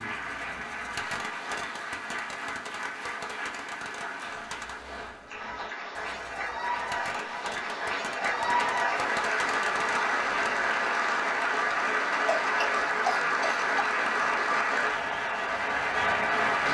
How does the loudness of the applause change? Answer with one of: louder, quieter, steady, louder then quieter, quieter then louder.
louder.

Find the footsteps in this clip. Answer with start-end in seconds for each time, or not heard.
not heard.